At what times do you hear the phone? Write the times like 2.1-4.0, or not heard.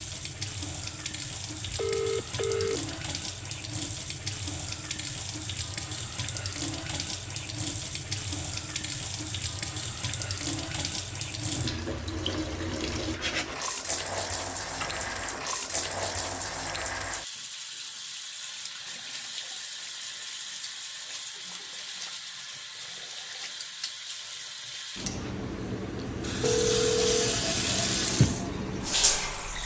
1.6-3.0, 14.8-15.3, 26.4-27.4.